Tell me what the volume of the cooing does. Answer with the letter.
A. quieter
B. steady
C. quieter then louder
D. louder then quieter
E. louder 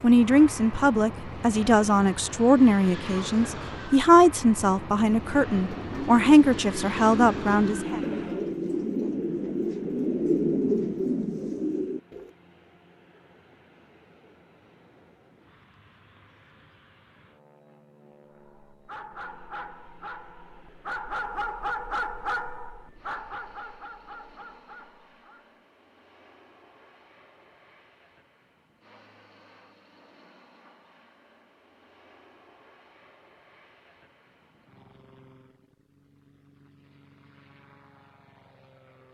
E.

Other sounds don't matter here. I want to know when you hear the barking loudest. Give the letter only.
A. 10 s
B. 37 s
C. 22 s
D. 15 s
C.